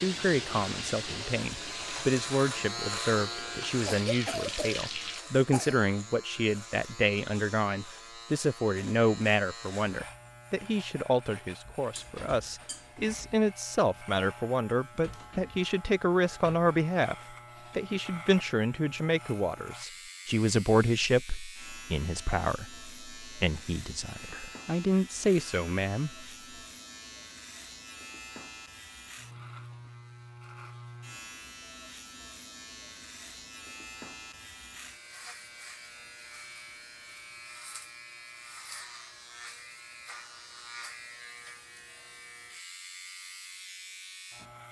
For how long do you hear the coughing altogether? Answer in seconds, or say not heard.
2 s.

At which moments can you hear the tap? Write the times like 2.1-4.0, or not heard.
0.0-5.2.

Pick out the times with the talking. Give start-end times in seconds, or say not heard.
0.0-17.1, 17.8-26.2.